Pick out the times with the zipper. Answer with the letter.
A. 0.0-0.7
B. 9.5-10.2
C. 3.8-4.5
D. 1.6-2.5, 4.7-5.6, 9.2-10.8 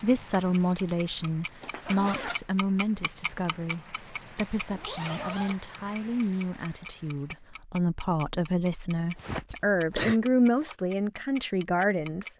D.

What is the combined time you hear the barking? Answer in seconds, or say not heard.
not heard.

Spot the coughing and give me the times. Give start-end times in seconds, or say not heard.
9.5-10.2.